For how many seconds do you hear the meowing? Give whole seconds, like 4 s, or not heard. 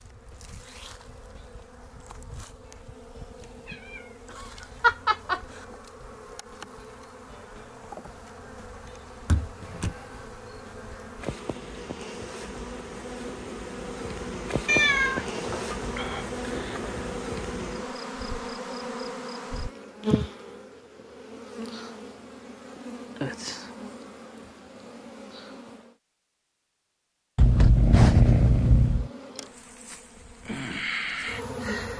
6 s.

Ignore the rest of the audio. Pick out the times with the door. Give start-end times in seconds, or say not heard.
9.2-9.9.